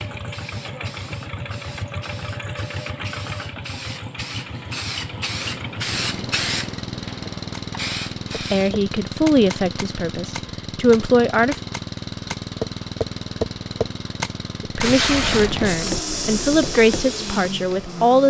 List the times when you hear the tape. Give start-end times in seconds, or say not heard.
14.8-16.0.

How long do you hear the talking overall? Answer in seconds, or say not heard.
7 s.